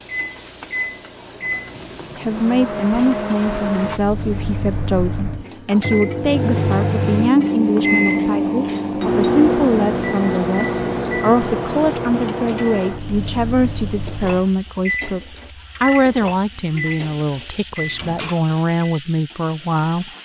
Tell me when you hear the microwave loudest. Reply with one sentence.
The volume of the microwave peaks at 8 seconds.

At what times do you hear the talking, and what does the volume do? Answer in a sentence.
You can hear the talking from 2.1 to 20.1 s, at a steady volume.